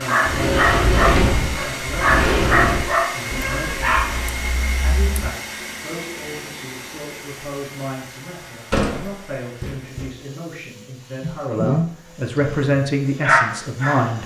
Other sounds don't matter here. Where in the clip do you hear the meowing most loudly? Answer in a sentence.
The loudest moment of the meowing is at 12 seconds.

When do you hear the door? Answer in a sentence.
The door can be heard from 0.2 to 2.9 s and from 8.7 to 10.1 s.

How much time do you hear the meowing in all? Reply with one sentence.
The meowing can be heard for 3 seconds in total.